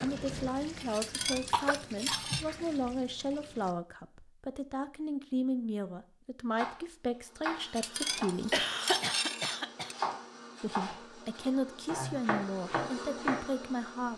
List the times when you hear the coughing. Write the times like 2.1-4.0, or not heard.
1.3-3.0, 7.5-9.9.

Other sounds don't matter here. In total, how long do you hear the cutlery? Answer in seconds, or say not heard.
4 s.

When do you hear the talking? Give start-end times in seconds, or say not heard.
0.0-8.7, 10.6-14.1.